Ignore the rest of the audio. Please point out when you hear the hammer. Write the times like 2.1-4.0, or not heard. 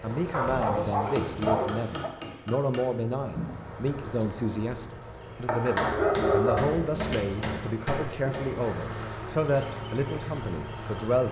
1.1-2.8, 5.8-8.5.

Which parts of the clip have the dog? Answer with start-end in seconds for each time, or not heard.
0.3-2.1, 5.8-7.5.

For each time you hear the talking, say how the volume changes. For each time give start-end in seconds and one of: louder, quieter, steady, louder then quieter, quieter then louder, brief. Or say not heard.
0.0-11.2 steady.